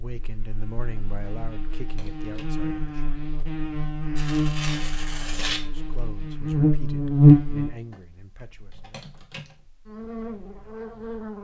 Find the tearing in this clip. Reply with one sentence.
The tearing can be heard from 4.2 to 5.6 s.